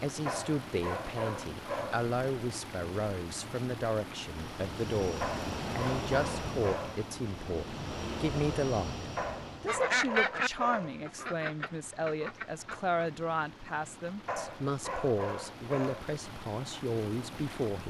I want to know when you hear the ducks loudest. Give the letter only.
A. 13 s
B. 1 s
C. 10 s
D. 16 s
C.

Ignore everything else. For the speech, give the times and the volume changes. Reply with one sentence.
You can hear the speech from 0.0 to 17.8 s, at a steady volume.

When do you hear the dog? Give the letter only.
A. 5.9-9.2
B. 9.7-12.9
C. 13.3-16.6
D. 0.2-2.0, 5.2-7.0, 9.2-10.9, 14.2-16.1
D.